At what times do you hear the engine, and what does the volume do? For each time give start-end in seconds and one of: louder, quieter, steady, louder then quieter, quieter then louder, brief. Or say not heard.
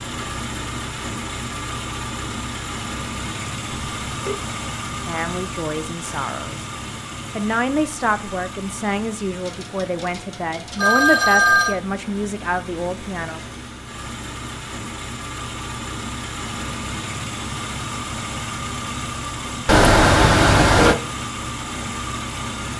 0.0-22.7 quieter then louder.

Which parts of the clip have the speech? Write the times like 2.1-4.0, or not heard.
4.9-6.7, 7.3-13.4.